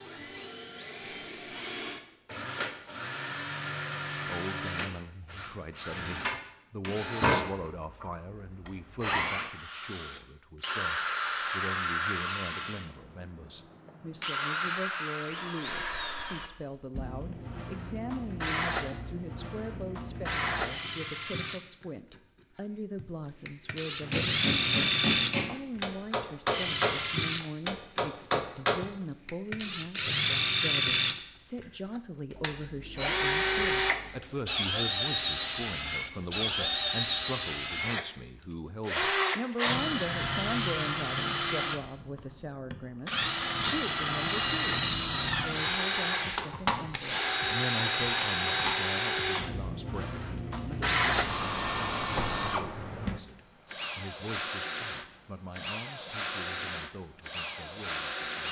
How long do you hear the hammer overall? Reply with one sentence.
The hammer can be heard for 5 seconds in total.